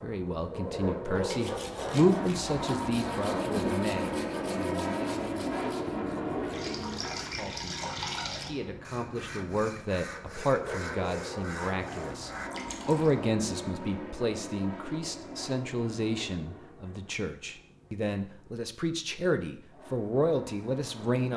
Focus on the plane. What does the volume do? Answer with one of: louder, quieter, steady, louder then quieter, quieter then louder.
quieter.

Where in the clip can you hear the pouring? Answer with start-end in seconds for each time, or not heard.
6.5-8.5, 12.5-13.1.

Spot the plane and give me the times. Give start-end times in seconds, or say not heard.
0.0-21.3.